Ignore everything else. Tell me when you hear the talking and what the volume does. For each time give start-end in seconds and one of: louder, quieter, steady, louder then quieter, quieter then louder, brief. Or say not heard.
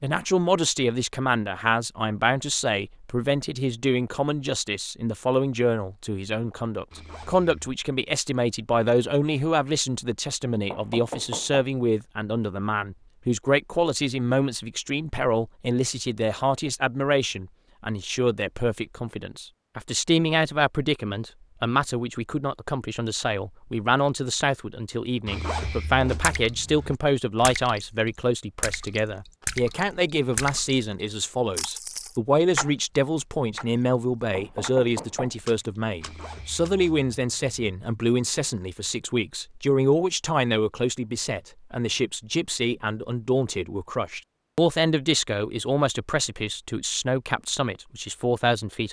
0.0-48.8 steady.